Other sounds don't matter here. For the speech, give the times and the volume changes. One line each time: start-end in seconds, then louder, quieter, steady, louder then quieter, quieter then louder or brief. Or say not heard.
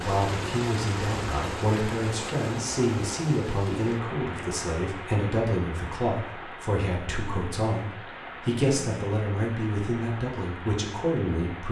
0.0-11.6 steady.